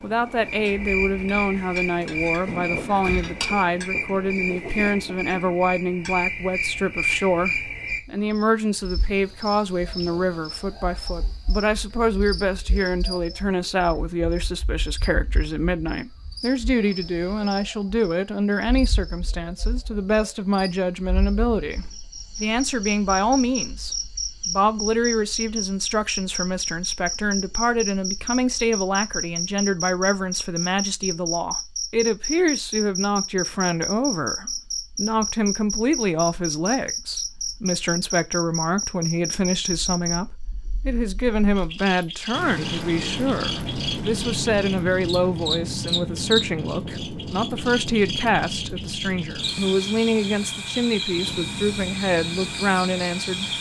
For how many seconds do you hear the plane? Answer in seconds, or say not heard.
11 s.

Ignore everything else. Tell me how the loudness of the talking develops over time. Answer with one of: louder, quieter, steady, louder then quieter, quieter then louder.
steady.